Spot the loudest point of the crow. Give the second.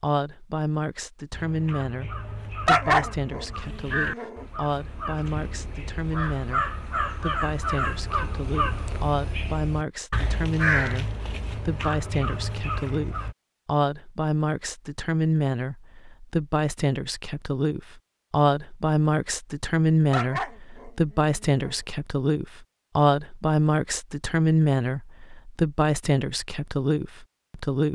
11 s.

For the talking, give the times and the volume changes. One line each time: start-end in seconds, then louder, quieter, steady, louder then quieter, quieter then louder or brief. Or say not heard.
0.0-27.9 louder.